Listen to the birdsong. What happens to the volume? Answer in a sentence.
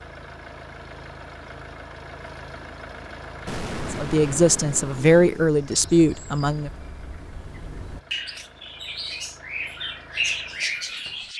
The volume of the birdsong goes up.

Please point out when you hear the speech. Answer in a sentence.
The speech can be heard from 3.9 to 6.7 s.